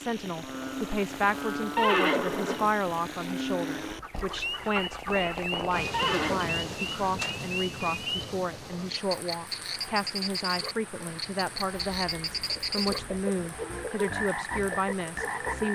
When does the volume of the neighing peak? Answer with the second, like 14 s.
2 s.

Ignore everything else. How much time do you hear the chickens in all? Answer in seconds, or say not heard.
5 s.